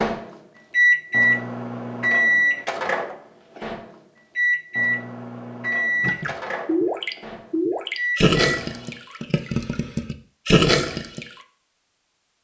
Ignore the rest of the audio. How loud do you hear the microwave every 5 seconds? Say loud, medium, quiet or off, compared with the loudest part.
loud, medium, off.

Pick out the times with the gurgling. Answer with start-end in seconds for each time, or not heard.
6.0-11.2.